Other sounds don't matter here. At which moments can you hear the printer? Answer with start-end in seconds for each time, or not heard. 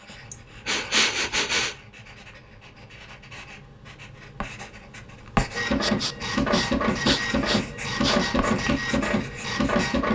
5.5-10.0.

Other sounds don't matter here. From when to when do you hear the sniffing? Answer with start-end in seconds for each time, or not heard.
0.3-1.8, 5.8-8.3.